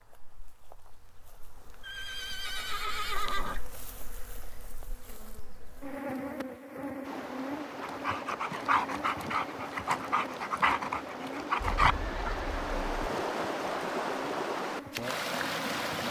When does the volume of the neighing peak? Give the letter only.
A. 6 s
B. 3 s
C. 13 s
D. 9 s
B.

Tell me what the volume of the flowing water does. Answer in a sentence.
The loudness of the flowing water goes up.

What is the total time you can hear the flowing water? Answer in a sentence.
The flowing water can be heard for 9 seconds in total.